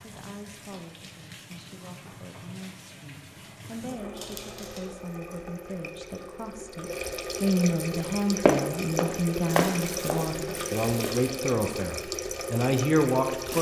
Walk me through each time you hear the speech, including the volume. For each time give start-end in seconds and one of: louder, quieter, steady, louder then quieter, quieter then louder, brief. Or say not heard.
0.0-13.5 louder.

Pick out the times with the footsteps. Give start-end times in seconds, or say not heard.
8.4-11.1.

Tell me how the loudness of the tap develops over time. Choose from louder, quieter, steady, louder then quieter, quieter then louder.
louder.